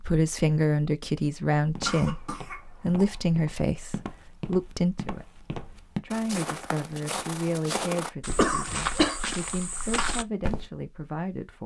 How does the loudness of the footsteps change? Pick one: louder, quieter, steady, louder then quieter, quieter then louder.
louder.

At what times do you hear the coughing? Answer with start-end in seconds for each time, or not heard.
1.9-3.2, 8.3-9.2.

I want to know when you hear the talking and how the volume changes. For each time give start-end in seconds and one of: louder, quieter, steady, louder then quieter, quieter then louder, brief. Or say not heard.
0.0-11.6 quieter.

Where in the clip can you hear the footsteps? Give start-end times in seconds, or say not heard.
1.6-10.7.